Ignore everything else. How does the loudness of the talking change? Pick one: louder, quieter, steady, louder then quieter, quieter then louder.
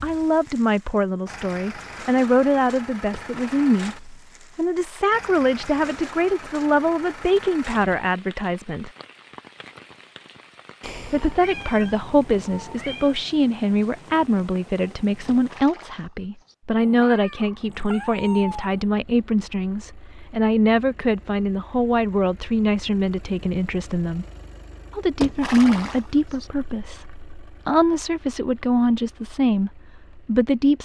steady.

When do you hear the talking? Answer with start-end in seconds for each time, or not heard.
0.0-8.9, 11.1-24.2, 24.9-30.8.